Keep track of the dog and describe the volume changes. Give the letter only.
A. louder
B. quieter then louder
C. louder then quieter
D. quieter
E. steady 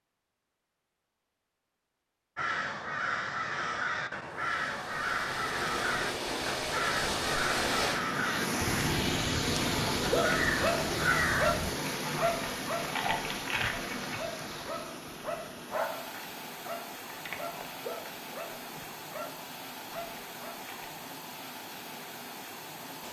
D.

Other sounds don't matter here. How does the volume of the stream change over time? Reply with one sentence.
The loudness of the stream goes down.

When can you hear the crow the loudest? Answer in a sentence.
The volume of the crow peaks at 11 seconds.